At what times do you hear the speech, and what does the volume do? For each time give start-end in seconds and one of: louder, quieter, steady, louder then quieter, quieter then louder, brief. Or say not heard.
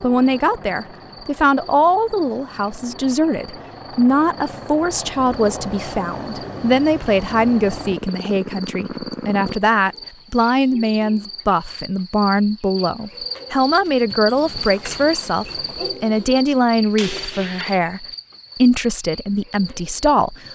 0.0-20.4 steady.